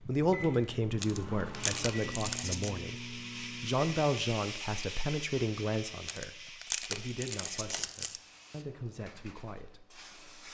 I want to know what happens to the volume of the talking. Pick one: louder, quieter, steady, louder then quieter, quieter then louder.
quieter.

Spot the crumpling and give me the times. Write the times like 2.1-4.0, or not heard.
1.0-2.7, 6.0-8.2.